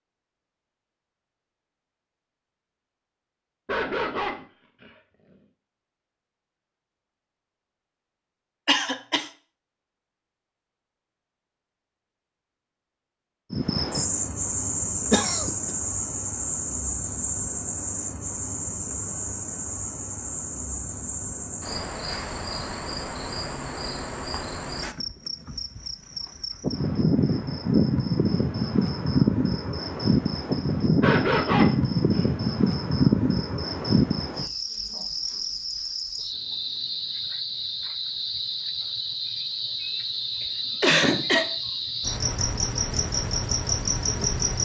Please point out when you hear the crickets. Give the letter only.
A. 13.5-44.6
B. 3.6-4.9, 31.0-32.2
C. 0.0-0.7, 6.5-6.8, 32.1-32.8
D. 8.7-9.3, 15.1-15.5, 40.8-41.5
A.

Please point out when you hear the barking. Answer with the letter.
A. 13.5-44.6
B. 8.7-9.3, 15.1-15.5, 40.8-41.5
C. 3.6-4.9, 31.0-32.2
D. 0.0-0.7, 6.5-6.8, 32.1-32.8
C.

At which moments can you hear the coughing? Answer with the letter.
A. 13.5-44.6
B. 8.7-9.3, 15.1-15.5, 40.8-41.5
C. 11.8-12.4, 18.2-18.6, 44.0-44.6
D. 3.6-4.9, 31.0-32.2
B.